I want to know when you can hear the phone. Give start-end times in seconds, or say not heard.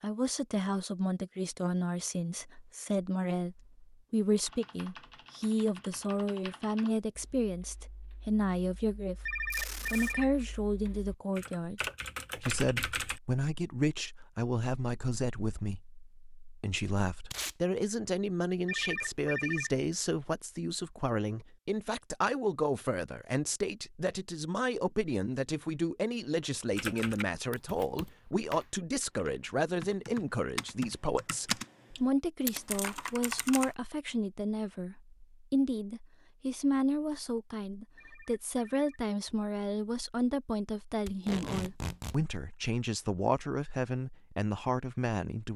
9.2-10.3, 18.6-19.8, 38.0-39.0.